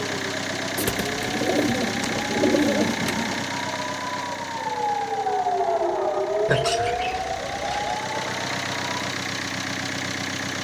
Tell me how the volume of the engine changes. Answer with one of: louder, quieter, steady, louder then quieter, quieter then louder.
quieter then louder.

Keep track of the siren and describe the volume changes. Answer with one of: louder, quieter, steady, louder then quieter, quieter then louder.
louder then quieter.